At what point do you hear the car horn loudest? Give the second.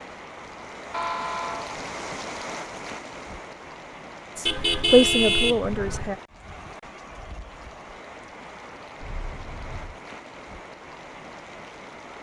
5 s.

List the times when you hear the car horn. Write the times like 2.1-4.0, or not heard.
0.9-1.8, 4.5-6.2, 9.0-10.0.